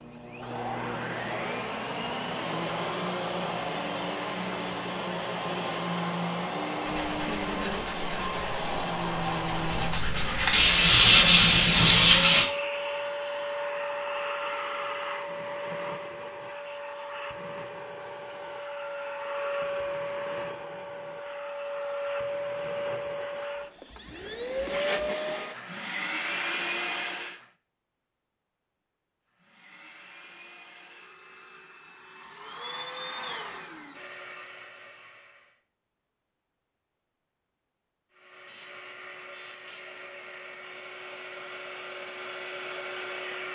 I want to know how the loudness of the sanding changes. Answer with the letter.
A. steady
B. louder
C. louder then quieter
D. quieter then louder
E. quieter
B.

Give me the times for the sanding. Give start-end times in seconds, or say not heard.
6.8-12.4.